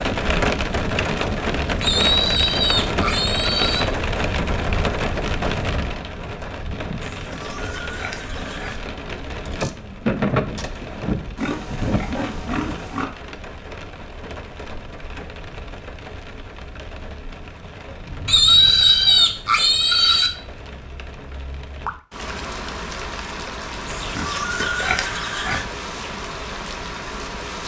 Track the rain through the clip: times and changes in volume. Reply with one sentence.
The rain can be heard from 0.0 to 27.6 s, getting quieter then louder.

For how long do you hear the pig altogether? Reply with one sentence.
You can hear the pig for 9 seconds altogether.